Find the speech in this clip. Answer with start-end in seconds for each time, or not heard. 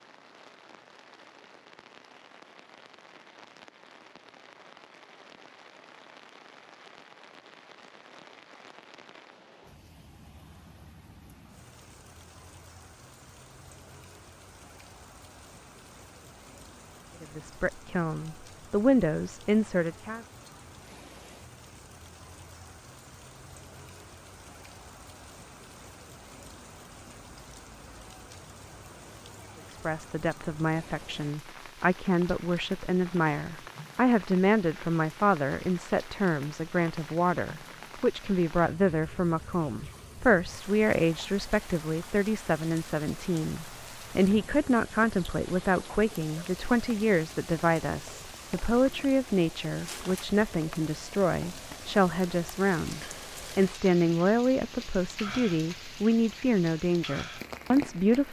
17.2-20.2, 29.7-58.2.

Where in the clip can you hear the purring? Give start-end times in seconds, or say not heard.
not heard.